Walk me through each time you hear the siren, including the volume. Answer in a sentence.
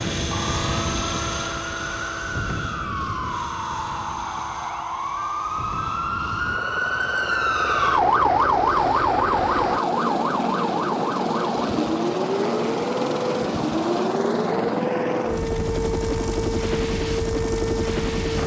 The siren can be heard from 0.2 to 18.4 s, getting louder then quieter.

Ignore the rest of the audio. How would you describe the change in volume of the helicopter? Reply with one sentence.
The volume of the helicopter goes down, then up.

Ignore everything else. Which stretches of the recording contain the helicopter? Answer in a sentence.
You can hear the helicopter from 0.0 to 18.4 s.